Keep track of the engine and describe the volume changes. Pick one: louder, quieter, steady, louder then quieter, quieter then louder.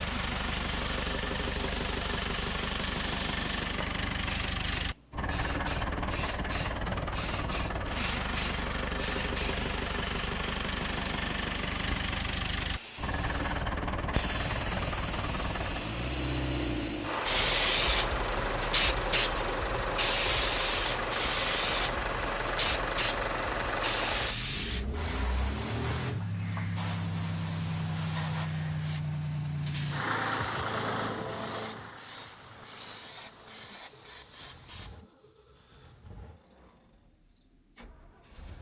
quieter.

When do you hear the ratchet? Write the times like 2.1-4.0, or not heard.
not heard.